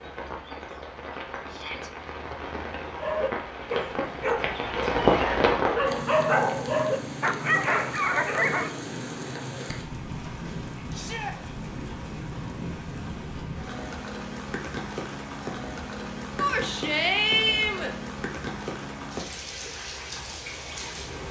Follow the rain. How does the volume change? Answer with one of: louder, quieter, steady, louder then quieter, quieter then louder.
louder then quieter.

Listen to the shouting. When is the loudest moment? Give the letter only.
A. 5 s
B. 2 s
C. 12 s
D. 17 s
D.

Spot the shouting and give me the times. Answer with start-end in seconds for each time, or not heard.
1.4-1.9, 10.9-11.3, 16.4-17.9.